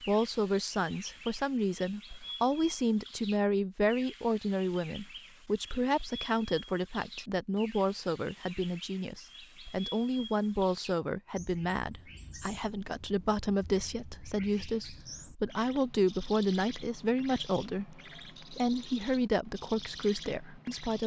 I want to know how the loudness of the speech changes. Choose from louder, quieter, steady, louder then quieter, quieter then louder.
steady.